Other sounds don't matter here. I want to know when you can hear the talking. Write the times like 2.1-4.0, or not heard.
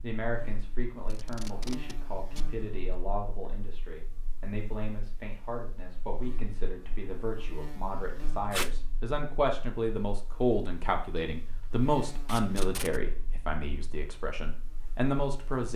0.0-15.7.